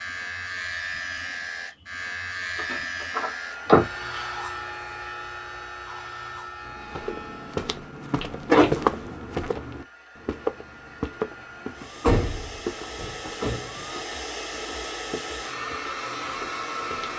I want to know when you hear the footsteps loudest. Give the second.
9 s.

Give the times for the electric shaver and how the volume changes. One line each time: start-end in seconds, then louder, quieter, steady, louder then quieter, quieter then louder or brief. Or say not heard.
0.0-7.7 quieter.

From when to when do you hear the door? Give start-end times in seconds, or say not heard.
2.5-3.9, 8.2-8.8, 12.0-13.8.